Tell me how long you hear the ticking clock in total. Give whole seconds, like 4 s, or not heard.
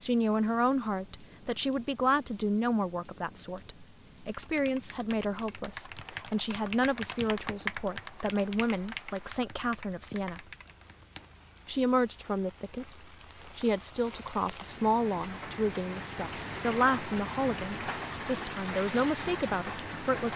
not heard.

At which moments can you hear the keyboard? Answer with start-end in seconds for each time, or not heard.
4.2-11.3.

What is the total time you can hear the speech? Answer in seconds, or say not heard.
18 s.